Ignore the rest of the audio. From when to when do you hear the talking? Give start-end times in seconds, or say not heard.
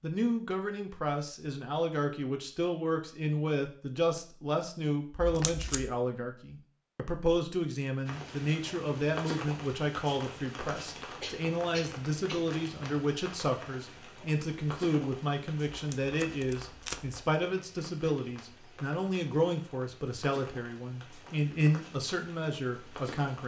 0.0-23.4.